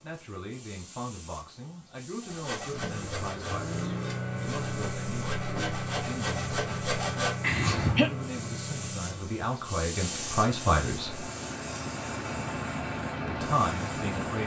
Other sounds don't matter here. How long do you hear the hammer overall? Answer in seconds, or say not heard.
not heard.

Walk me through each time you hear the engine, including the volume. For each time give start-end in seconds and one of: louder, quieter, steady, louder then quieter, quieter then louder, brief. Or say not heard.
2.6-14.4 quieter then louder.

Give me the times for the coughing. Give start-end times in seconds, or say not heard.
7.4-8.1.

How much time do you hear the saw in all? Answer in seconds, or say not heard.
6 s.